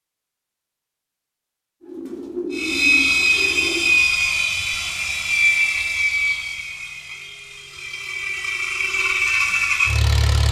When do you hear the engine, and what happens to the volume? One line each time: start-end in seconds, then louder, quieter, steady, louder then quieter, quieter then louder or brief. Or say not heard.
2.5-10.4 quieter then louder.